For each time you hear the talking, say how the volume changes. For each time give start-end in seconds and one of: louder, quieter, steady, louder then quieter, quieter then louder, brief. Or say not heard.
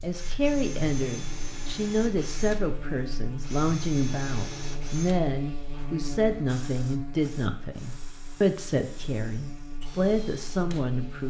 0.0-11.2 steady.